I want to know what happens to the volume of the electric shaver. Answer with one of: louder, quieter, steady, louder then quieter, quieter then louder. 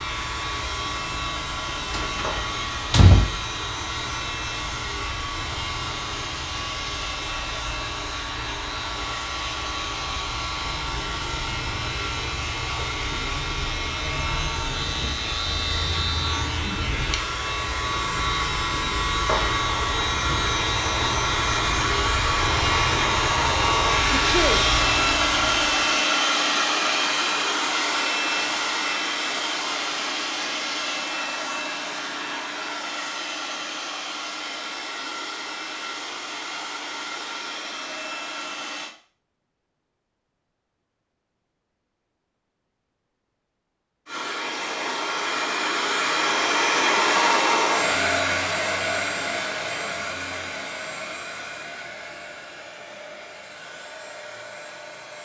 louder.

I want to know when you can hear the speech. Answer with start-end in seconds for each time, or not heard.
not heard.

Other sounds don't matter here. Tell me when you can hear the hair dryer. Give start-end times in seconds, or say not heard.
0.0-39.0, 44.0-55.2.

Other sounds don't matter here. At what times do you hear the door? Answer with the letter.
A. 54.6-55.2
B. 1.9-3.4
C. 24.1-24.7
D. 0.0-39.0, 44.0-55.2
B.